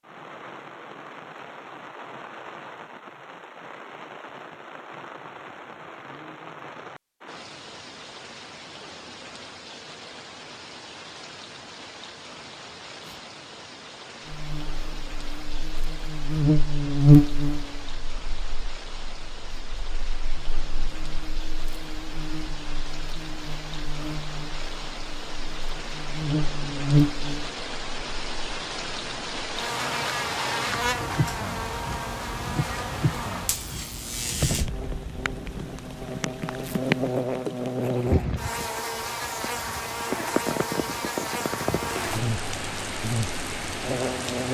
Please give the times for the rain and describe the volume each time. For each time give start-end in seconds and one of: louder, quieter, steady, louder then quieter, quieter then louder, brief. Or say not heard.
0.0-44.4 louder.